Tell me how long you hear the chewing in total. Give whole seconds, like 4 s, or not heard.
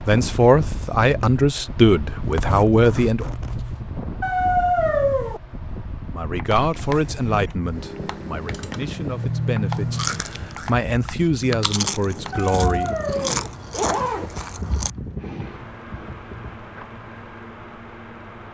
5 s.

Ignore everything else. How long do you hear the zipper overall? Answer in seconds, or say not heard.
3 s.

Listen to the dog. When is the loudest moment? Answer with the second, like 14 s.
5 s.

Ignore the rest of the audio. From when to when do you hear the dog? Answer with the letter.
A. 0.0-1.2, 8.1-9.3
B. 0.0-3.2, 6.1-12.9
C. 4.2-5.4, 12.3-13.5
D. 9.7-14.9
C.